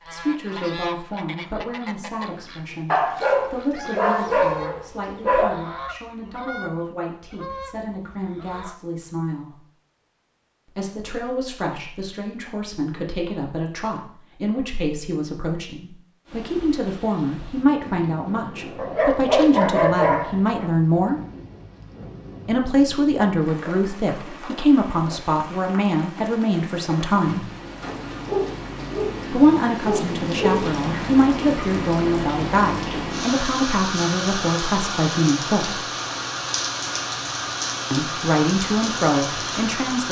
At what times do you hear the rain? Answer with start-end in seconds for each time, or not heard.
16.2-40.0.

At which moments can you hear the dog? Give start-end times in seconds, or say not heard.
2.9-5.5, 18.8-20.6, 27.9-30.6.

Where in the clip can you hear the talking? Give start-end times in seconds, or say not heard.
0.1-9.6, 10.7-21.2, 22.4-27.5, 29.3-35.9, 37.9-40.0.